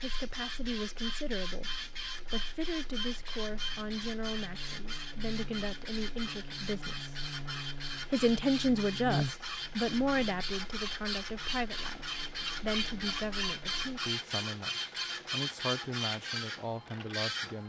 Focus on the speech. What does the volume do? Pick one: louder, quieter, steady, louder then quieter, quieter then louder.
louder then quieter.